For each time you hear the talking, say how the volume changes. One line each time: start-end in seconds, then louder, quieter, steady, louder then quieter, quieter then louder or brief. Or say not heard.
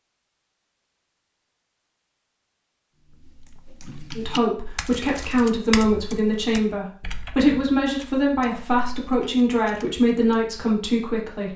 4.2-11.5 steady.